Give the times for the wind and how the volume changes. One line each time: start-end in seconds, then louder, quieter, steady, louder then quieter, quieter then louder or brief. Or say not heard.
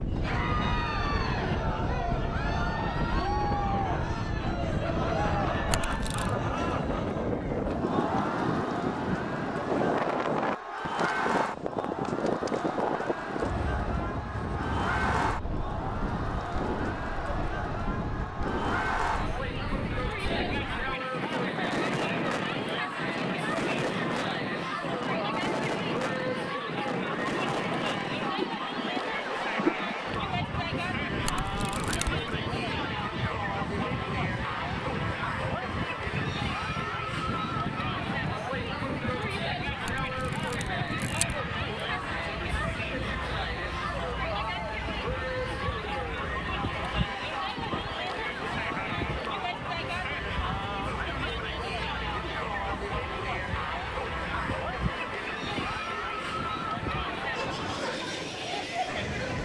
0.0-59.4 quieter.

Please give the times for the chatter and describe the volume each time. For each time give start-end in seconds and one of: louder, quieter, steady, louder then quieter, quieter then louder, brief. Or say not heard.
0.1-59.4 steady.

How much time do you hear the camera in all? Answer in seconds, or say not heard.
3 s.